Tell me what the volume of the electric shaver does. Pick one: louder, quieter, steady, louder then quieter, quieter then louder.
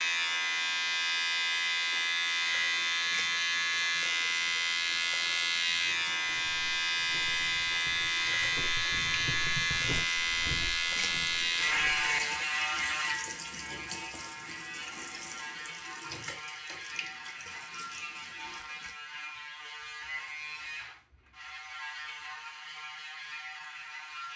quieter.